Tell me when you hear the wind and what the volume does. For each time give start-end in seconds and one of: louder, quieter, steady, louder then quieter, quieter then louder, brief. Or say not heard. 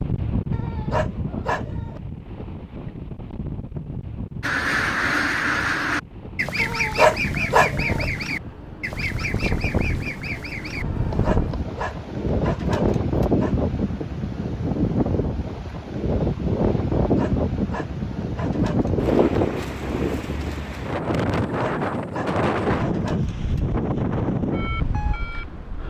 0.0-25.8 louder.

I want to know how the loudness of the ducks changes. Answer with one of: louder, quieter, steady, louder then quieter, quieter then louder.
quieter.